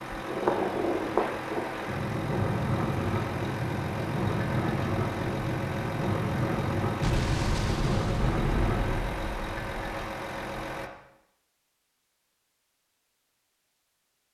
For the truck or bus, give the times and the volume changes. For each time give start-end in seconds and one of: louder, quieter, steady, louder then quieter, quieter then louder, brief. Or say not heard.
0.0-10.9 steady.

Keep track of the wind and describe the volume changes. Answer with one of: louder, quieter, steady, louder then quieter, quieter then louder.
steady.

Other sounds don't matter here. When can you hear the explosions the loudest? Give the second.
7 s.